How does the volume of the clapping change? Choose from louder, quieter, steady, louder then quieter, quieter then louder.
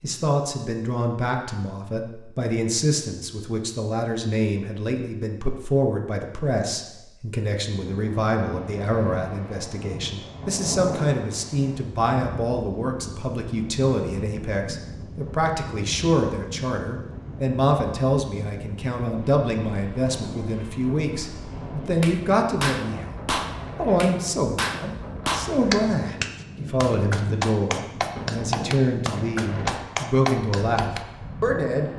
steady.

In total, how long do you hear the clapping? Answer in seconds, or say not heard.
9 s.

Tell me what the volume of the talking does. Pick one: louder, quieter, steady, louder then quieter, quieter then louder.
steady.